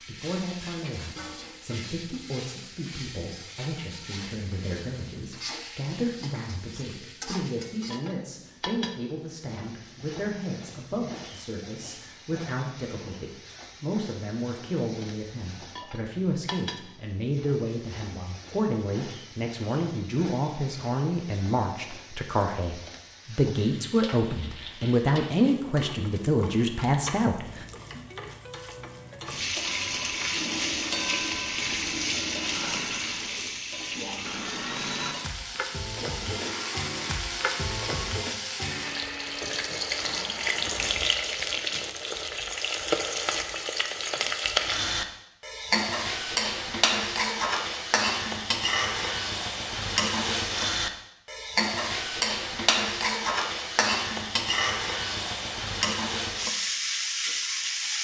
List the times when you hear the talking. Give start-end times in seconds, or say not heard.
0.1-27.6.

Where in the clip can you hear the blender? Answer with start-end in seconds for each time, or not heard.
30.3-40.9.